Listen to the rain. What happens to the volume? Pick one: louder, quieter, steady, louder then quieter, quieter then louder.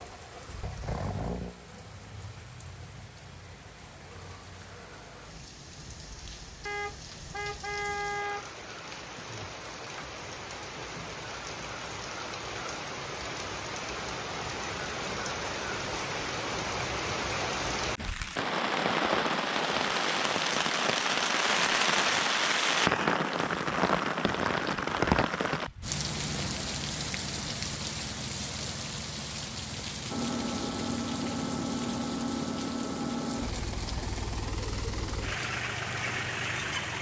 louder then quieter.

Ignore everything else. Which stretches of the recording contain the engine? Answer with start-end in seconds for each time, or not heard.
0.0-5.4, 30.1-36.9.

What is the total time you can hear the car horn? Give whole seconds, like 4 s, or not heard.
2 s.